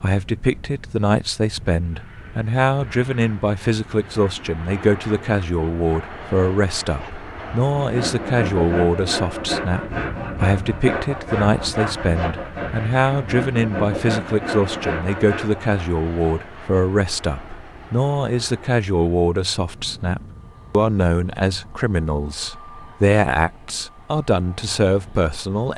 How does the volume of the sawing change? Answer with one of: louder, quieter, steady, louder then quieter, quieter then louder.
steady.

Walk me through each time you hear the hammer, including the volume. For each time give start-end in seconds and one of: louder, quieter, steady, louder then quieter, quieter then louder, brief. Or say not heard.
not heard.